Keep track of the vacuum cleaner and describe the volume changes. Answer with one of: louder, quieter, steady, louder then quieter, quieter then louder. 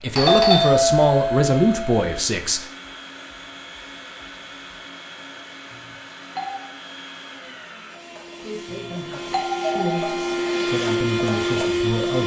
louder.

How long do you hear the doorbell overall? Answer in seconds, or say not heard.
5 s.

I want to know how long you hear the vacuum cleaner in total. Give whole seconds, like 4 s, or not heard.
12 s.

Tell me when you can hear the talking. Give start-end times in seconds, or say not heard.
0.0-2.6, 8.4-12.2.